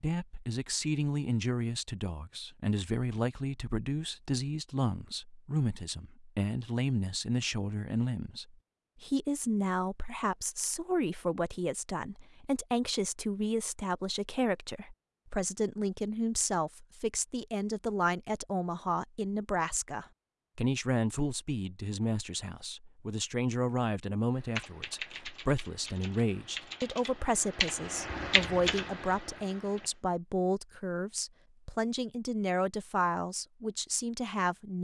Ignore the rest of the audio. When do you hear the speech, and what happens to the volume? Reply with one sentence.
You can hear the speech from 0.0 to 34.7 s, at a steady volume.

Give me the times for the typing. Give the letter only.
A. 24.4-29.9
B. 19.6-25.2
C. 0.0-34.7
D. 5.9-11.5
A.